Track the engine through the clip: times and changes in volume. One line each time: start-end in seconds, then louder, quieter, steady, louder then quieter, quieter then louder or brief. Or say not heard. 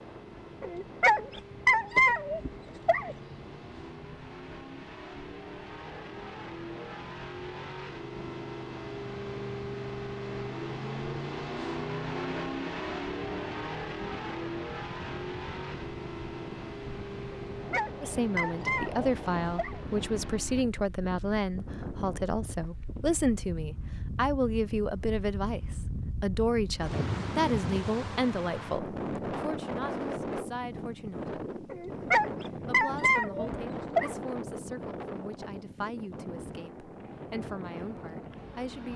0.0-20.6 louder then quieter.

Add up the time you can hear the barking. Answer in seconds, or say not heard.
7 s.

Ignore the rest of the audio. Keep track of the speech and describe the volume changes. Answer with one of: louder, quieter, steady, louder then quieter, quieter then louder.
quieter.